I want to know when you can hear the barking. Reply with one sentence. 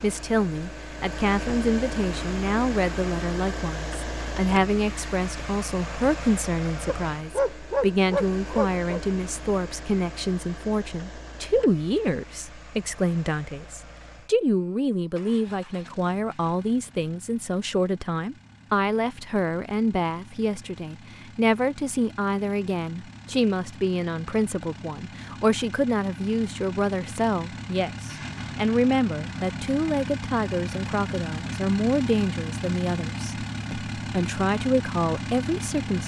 The barking can be heard from 6.8 to 9.0 s.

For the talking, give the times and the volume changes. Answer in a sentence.
The talking can be heard from 0.0 to 36.0 s, at a steady volume.